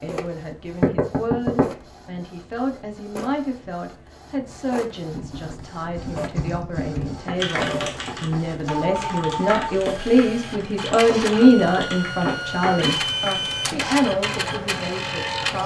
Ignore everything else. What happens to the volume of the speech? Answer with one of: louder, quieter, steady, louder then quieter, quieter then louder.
louder then quieter.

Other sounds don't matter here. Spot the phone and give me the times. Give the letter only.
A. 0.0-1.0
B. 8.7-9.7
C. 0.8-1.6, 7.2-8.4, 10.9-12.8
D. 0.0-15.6
B.